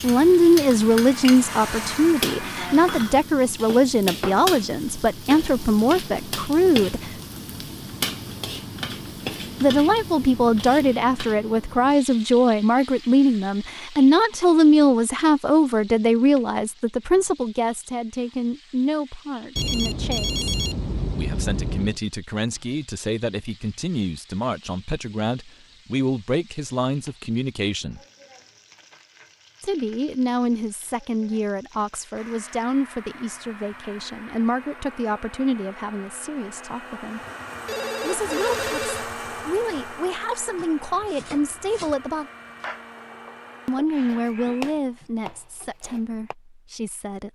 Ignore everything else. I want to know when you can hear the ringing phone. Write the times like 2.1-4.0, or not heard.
19.6-22.0, 37.5-39.1.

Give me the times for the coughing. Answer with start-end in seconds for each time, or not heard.
not heard.